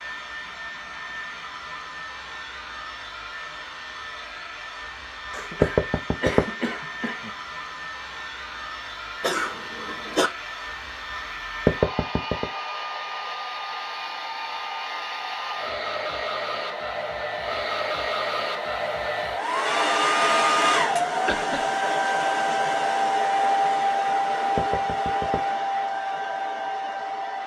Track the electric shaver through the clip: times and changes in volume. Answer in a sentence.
The electric shaver can't be heard in this clip.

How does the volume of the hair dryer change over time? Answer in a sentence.
The loudness of the hair dryer goes up.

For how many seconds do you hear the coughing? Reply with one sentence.
The coughing can be heard for 4 seconds in total.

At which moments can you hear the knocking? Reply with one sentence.
You can hear the knocking from 5.6 to 6.5 s, from 11.7 to 12.4 s and from 24.6 to 25.4 s.